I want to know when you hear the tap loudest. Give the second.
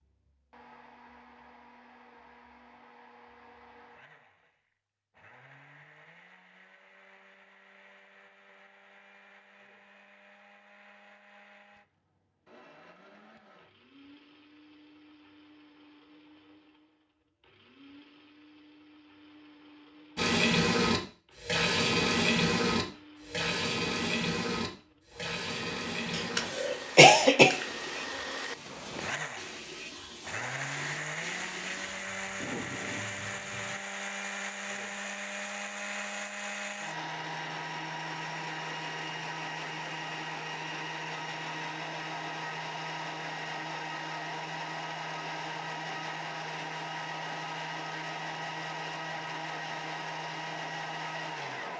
22 s.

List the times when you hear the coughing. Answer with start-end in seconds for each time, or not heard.
26.1-27.6.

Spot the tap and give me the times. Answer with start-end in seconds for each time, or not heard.
20.1-33.8.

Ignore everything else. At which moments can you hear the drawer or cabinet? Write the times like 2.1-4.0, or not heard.
not heard.